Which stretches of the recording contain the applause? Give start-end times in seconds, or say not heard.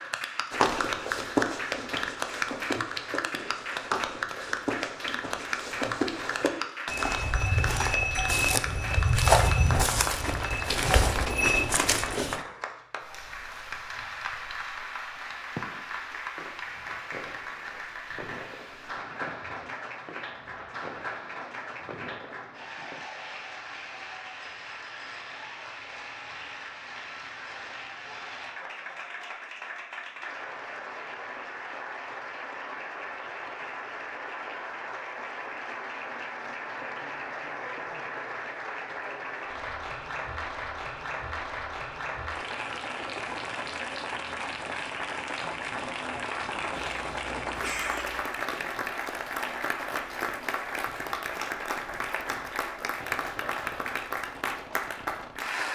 0.0-55.7.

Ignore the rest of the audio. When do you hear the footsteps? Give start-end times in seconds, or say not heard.
0.5-12.4.